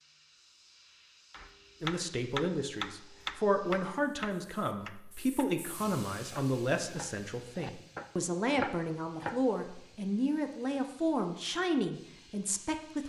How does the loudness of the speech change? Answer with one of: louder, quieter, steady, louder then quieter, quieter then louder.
steady.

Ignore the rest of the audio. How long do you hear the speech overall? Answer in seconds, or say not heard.
11 s.